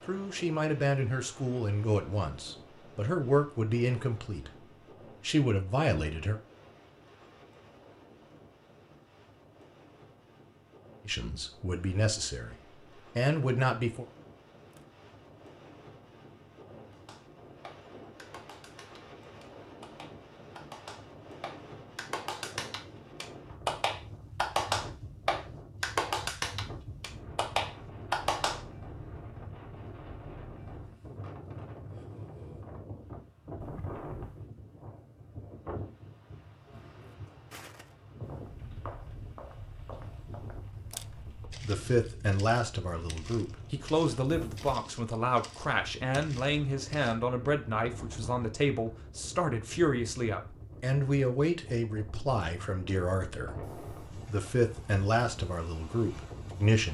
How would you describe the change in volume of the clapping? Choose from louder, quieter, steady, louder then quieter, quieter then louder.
louder.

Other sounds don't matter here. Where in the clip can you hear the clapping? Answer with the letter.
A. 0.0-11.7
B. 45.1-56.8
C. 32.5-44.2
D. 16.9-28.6
D.